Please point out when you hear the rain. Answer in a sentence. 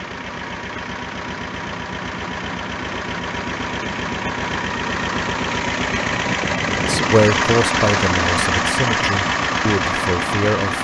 The rain can't be heard in this clip.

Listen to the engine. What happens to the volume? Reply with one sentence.
The loudness of the engine goes up.